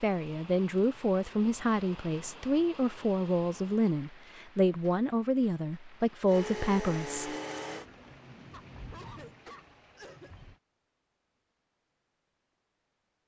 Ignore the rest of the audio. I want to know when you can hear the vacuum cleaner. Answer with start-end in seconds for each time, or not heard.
6.2-7.8.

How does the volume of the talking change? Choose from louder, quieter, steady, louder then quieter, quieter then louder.
steady.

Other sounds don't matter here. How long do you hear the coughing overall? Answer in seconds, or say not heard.
2 s.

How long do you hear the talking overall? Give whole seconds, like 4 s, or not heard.
7 s.